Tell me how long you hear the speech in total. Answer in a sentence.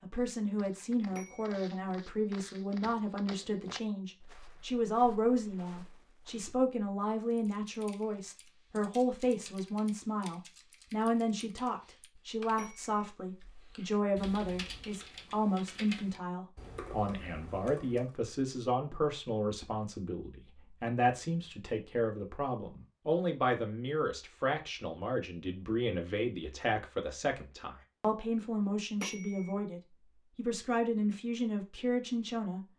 The speech can be heard for 33 seconds in total.